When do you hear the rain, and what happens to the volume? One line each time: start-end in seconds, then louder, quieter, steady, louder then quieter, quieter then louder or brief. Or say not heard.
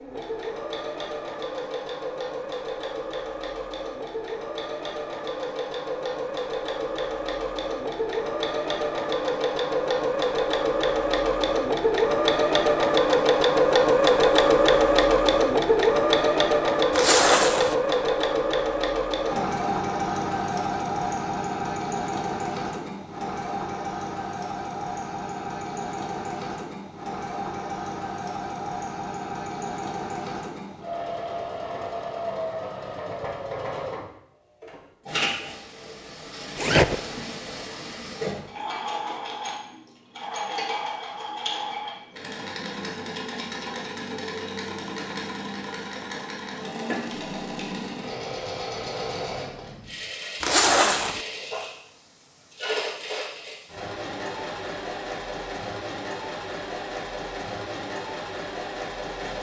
not heard.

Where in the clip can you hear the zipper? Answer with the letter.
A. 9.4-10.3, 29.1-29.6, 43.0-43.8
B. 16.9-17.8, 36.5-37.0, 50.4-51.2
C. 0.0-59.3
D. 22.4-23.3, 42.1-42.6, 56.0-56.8
B.